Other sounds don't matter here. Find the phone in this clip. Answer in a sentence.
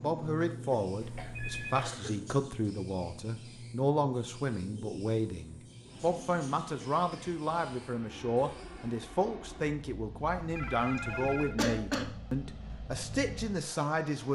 You can hear the phone from 1.0 to 1.9 s and from 10.3 to 11.6 s.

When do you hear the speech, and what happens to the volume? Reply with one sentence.
You can hear the speech from 0.0 to 14.2 s, at a steady volume.